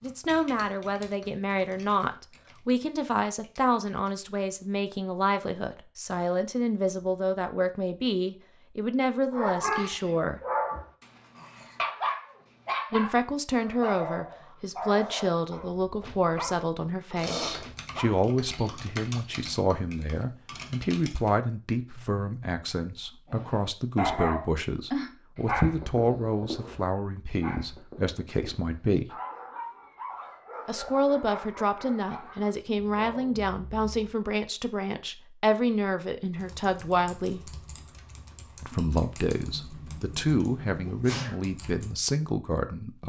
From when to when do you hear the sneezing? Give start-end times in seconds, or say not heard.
17.2-17.6, 39.4-41.4.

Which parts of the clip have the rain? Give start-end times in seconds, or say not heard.
not heard.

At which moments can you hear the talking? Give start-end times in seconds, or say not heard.
0.0-10.4, 12.9-29.1, 30.6-37.5, 38.6-43.0.